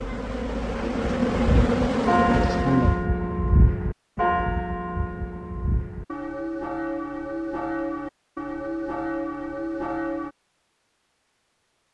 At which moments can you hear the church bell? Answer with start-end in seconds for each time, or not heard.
0.9-10.3.